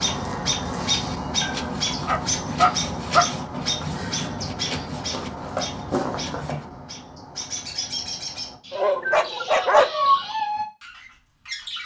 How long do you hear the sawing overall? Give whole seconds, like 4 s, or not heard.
5 s.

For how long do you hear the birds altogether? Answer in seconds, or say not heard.
12 s.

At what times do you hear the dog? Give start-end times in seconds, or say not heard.
1.4-3.3, 8.7-10.2.